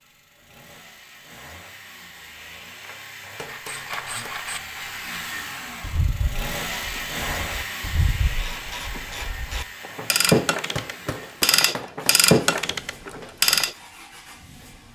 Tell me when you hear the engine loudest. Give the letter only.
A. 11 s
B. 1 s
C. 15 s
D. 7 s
D.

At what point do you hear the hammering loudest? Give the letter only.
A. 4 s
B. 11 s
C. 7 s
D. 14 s
B.